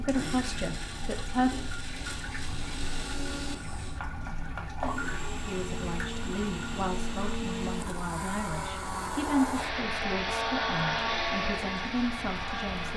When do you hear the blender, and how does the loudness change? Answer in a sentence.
You can hear the blender from 0.0 to 12.9 s, getting louder.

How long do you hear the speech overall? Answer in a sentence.
The speech can be heard for 9 seconds in total.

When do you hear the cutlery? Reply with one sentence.
The cutlery can't be heard in this clip.